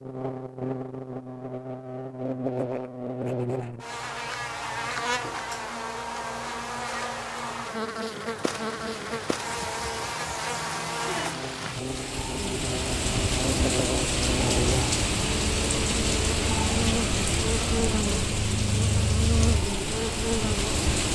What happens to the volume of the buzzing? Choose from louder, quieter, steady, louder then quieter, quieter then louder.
steady.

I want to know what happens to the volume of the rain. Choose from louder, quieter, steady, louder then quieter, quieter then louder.
louder.